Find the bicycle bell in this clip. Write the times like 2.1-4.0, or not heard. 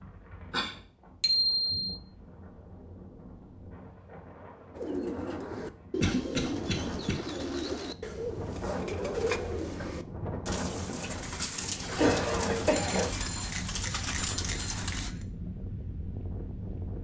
1.2-1.9, 12.7-15.2.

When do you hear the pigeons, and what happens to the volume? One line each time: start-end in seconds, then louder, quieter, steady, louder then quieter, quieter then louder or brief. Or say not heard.
4.8-15.2 steady.